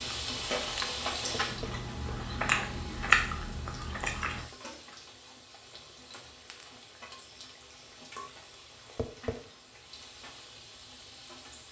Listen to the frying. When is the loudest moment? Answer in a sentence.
The loudest moment of the frying is at 1 second.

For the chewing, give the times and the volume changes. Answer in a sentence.
You can hear the chewing from 0.0 to 4.5 s, getting louder then quieter.